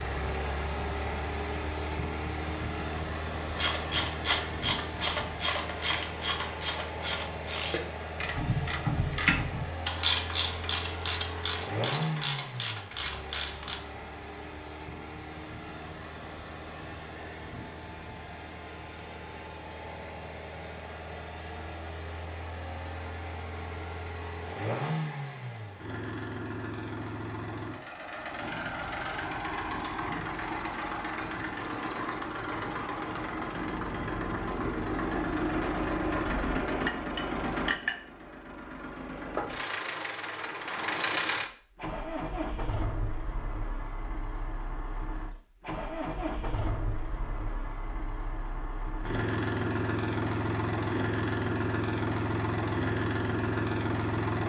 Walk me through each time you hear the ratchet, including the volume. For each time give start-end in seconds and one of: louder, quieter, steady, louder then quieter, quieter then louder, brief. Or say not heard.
3.5-13.8 quieter.